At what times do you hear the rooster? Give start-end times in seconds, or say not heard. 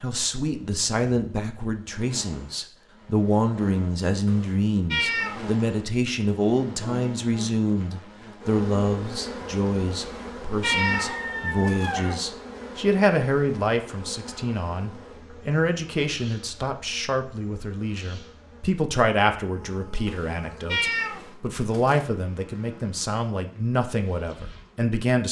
10.7-12.2.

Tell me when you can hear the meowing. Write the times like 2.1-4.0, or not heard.
4.2-5.5, 10.0-11.9, 20.1-22.1.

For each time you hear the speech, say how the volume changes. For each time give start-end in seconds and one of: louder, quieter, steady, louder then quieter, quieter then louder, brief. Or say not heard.
0.0-25.2 steady.